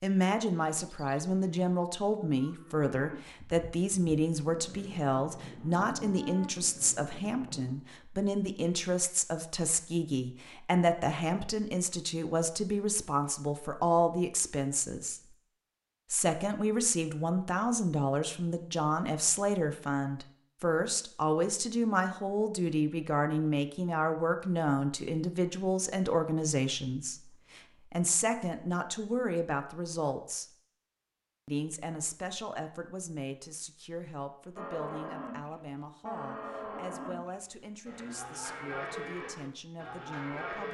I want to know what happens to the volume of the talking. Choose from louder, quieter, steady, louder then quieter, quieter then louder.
quieter.